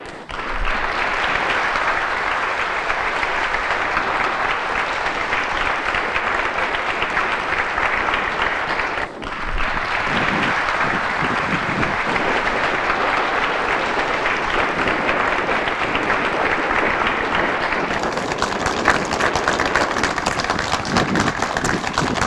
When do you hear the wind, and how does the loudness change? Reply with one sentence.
You can hear the wind from 0.0 to 22.2 s, getting louder.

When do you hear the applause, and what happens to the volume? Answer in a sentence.
The applause can be heard from 0.0 to 22.2 s, at a steady volume.